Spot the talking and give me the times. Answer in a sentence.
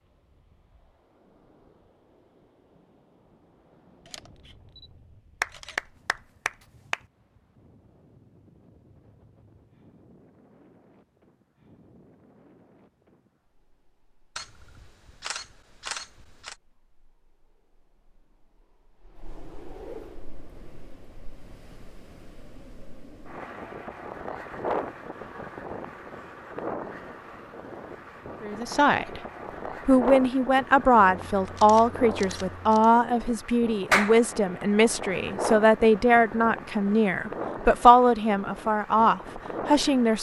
You can hear the talking from 28.4 to 29.2 s and from 29.9 to 40.1 s.